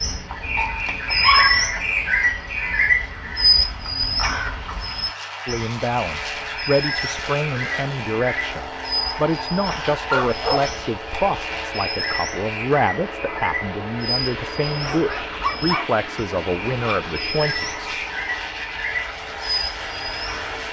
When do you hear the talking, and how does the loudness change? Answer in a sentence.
You can hear the talking from 5.5 to 17.9 s, at a steady volume.